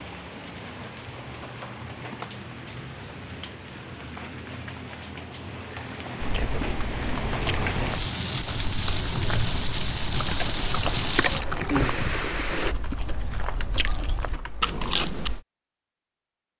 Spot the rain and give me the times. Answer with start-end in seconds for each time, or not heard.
0.0-12.8.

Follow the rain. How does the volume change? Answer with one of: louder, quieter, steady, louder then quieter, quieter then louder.
louder.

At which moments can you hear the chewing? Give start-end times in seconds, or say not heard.
6.2-15.3.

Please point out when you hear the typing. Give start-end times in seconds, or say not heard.
9.8-15.4.